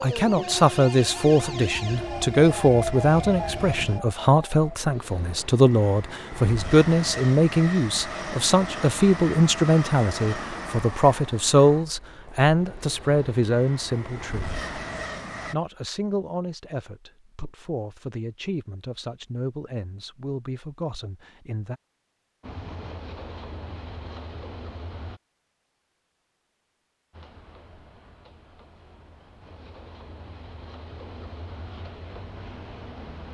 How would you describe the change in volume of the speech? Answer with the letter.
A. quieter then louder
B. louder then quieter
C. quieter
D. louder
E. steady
C.